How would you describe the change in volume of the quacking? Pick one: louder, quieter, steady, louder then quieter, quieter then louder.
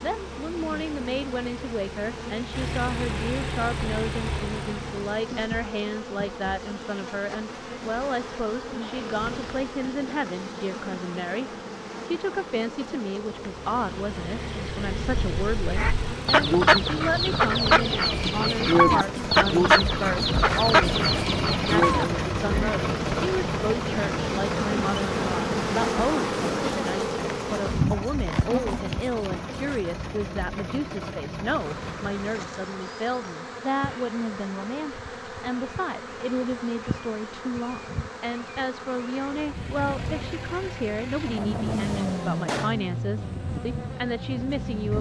steady.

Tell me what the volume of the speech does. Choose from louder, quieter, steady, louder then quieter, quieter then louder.
steady.